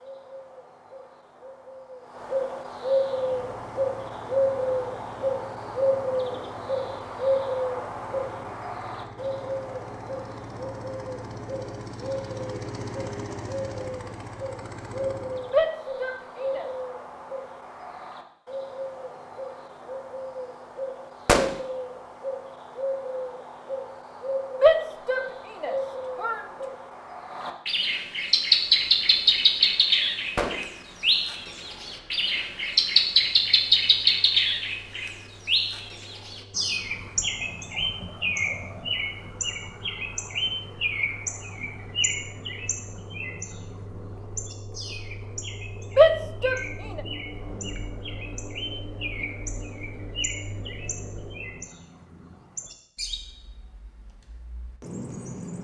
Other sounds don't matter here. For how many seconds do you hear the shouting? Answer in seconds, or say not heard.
4 s.